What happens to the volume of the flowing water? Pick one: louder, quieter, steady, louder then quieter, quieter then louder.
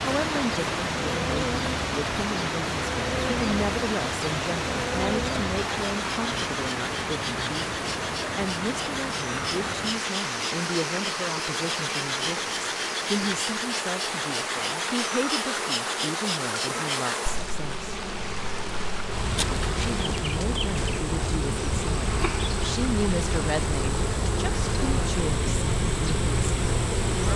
quieter.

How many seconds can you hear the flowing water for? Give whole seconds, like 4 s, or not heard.
27 s.